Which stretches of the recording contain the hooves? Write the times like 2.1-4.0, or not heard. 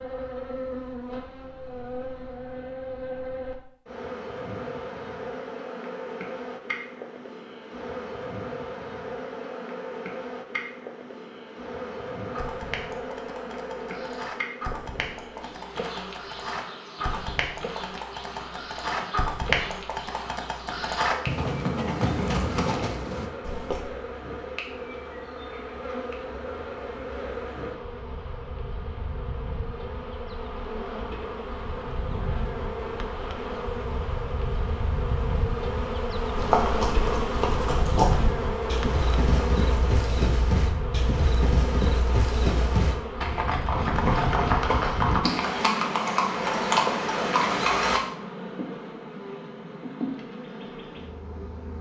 12.3-23.8, 36.4-48.0.